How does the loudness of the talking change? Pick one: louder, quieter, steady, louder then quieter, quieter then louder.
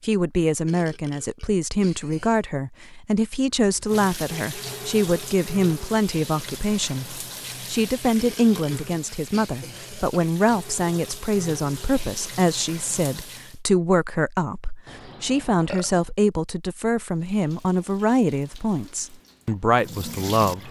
steady.